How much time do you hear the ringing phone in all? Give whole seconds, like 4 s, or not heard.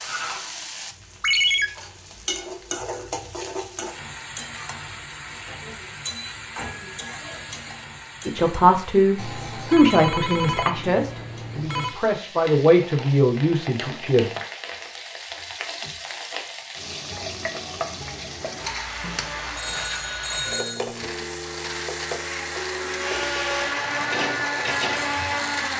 5 s.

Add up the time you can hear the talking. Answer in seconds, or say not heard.
6 s.